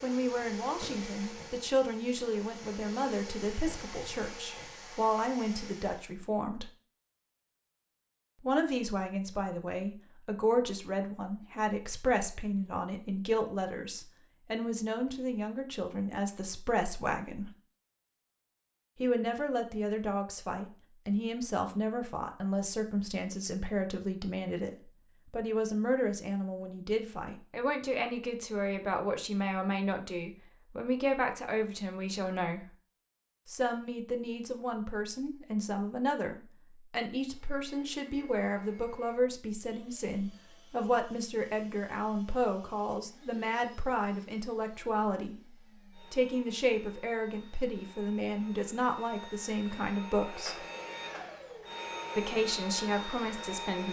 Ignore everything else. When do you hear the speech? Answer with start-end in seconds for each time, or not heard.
0.0-6.7, 8.4-17.6, 18.9-32.8, 33.5-45.4, 46.0-50.6, 52.1-53.8.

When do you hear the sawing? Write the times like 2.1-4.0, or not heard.
not heard.